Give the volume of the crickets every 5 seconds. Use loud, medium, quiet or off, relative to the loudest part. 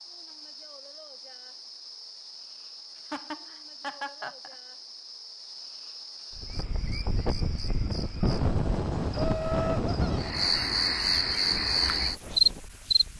quiet, quiet, loud.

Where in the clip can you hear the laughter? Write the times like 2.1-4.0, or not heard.
3.0-4.5, 9.1-10.2.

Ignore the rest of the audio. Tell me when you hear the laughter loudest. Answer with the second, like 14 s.
10 s.